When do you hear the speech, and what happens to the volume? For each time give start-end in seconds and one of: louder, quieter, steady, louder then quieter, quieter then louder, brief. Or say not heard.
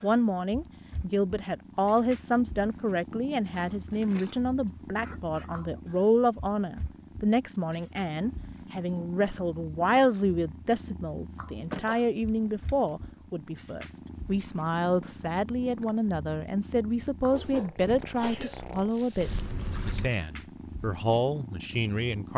0.0-22.3 steady.